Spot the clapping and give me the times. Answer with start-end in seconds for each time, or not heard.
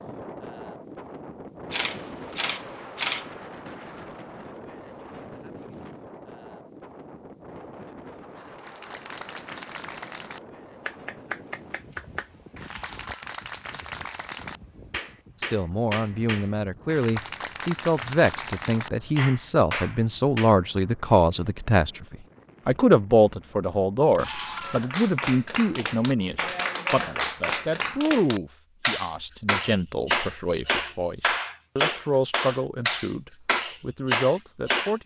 8.5-20.6, 24.6-35.0.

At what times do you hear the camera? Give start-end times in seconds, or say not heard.
1.7-3.3, 12.6-13.1, 24.1-24.9.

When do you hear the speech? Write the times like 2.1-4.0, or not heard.
15.4-35.0.